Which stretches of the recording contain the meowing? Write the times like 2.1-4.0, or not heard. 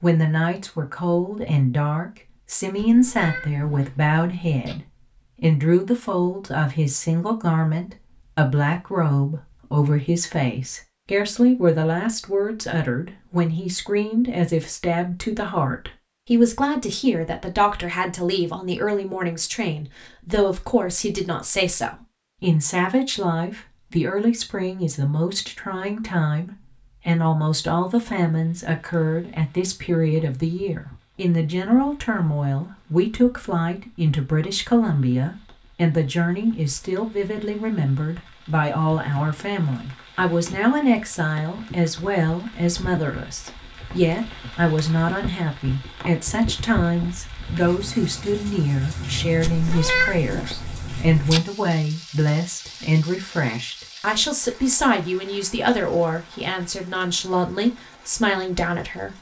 2.8-4.8, 49.4-51.4.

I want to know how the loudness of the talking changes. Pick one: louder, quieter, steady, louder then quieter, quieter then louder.
steady.